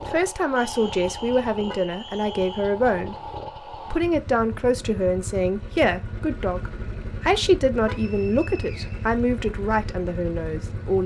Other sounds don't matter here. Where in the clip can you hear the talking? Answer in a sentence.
You can hear the talking from 0.0 to 11.0 s.